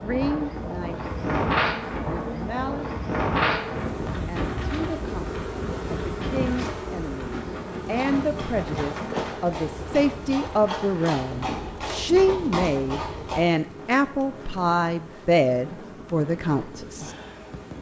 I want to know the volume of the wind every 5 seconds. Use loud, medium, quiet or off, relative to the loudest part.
loud, medium, quiet, quiet.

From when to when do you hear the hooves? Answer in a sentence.
You can hear the hooves from 7.8 to 13.4 s.